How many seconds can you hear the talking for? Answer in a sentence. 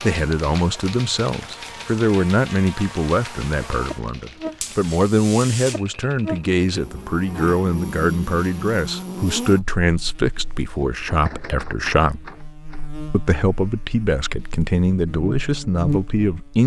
You can hear the talking for 16 seconds altogether.